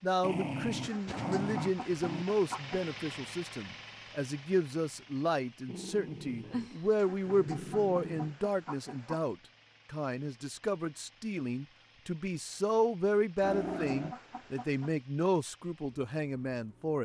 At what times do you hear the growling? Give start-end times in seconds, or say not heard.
0.2-2.2, 5.7-8.3, 13.4-14.2.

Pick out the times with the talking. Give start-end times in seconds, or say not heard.
0.0-16.9.